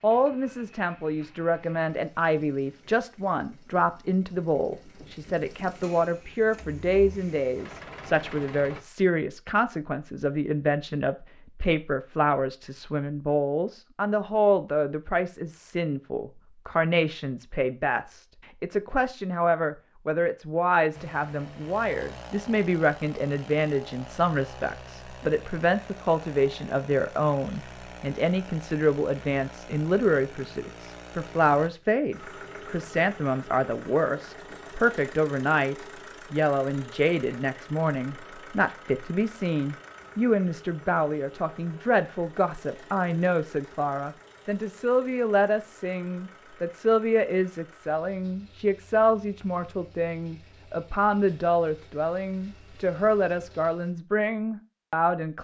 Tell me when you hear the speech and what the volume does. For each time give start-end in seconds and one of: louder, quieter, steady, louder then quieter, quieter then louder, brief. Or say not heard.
0.0-55.4 steady.